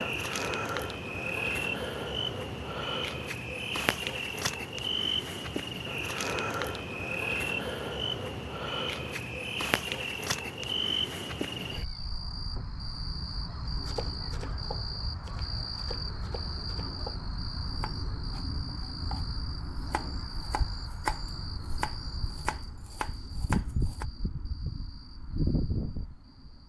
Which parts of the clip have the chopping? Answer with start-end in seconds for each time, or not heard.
13.7-24.1.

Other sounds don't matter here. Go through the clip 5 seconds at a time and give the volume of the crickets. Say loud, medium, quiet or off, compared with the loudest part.
loud, loud, loud, medium, medium, loud.